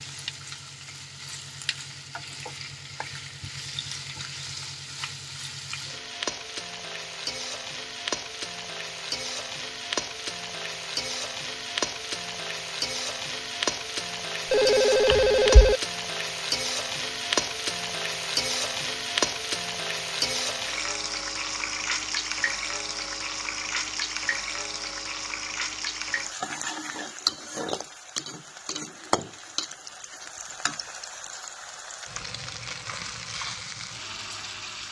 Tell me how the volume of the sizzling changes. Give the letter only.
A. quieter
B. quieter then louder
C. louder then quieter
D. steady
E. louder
C.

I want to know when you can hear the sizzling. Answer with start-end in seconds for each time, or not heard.
0.0-34.8.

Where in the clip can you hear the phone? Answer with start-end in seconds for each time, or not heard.
14.5-15.8.